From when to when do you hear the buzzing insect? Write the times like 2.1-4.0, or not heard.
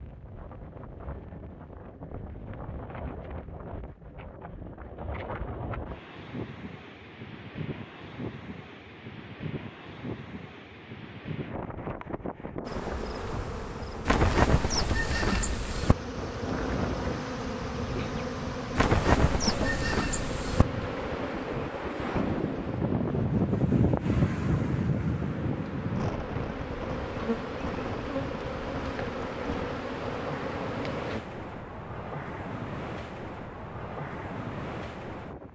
12.7-31.2.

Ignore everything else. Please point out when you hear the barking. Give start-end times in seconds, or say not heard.
not heard.